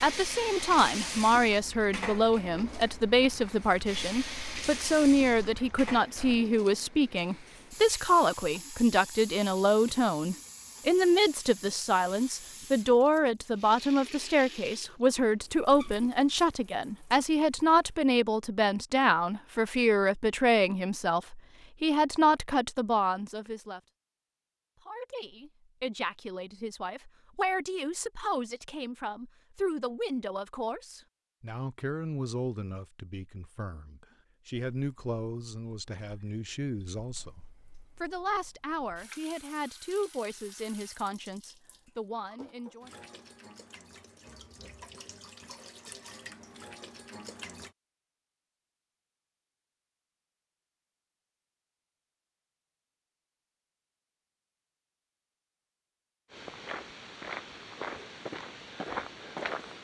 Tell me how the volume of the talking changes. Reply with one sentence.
The volume of the talking goes down.